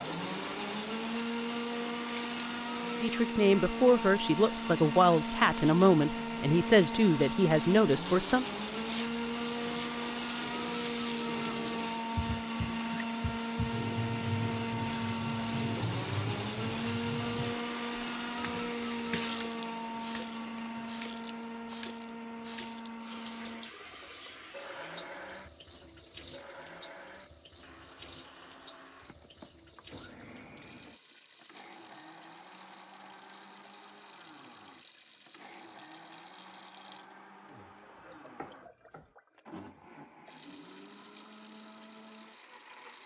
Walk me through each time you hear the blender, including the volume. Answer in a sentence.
You can hear the blender from 0.0 to 43.0 s, getting quieter.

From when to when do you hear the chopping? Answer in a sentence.
The chopping can be heard from 37.5 to 39.1 s.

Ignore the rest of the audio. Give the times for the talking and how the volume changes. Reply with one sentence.
You can hear the talking from 3.0 to 8.4 s, at a steady volume.